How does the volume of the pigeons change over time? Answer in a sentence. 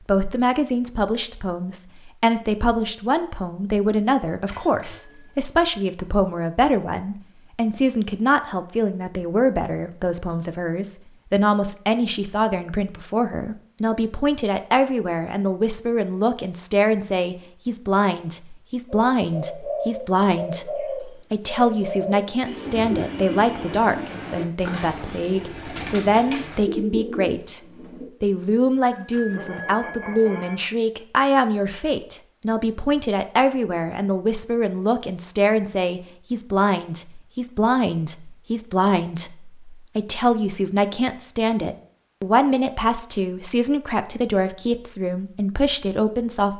The volume of the pigeons stays about the same.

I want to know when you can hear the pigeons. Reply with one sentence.
You can hear the pigeons from 18.9 to 28.1 s.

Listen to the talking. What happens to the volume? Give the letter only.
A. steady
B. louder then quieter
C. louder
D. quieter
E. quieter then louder
A.